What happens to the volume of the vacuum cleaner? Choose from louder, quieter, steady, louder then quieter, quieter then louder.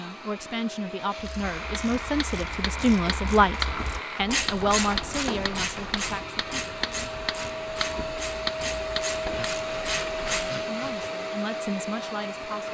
louder.